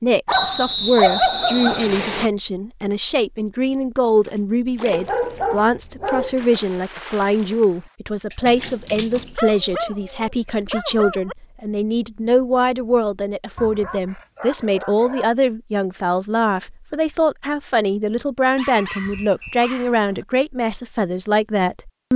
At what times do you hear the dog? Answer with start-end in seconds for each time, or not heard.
0.2-2.0, 4.9-6.3, 9.3-11.3, 13.6-15.3, 18.6-20.2.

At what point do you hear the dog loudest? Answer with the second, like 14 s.
1 s.